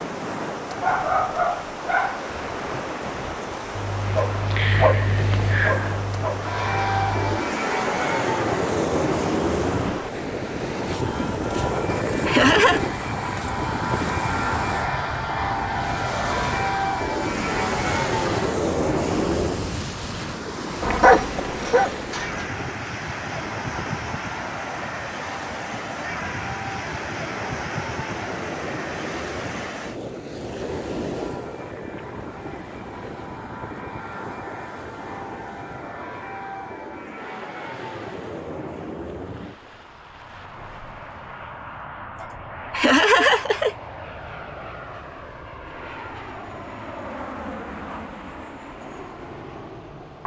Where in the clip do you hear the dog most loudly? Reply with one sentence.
The volume of the dog peaks at 21 seconds.